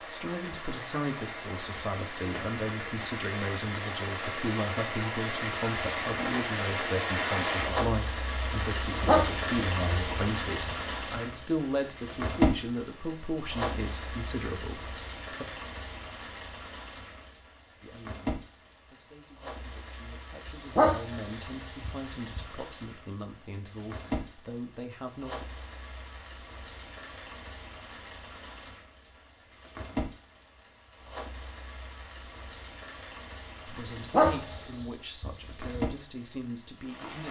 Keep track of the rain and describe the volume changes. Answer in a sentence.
The loudness of the rain goes down.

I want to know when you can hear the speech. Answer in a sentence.
The speech can be heard from 0.1 to 15.4 s, from 17.8 to 25.4 s and from 33.6 to 37.2 s.